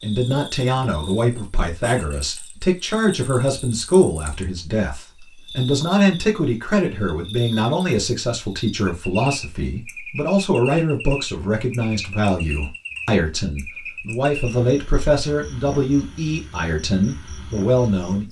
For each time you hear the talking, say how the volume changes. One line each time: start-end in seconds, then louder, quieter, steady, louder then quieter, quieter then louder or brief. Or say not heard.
0.0-18.2 steady.